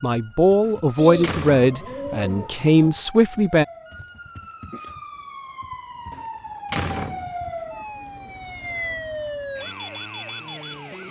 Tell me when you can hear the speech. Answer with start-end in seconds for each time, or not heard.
0.0-3.6.